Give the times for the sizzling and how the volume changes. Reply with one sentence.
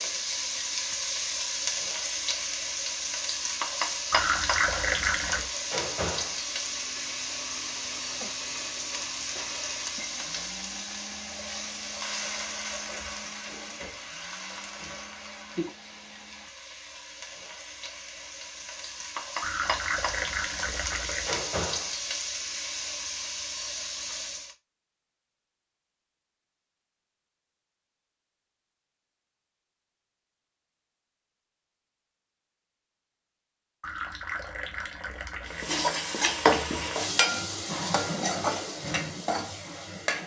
The sizzling can be heard from 0.0 to 24.6 s, getting quieter then louder; and from 35.5 to 40.2 s, getting quieter.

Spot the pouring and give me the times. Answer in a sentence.
You can hear the pouring from 4.1 to 5.5 s, from 19.4 to 21.4 s and from 33.8 to 35.8 s.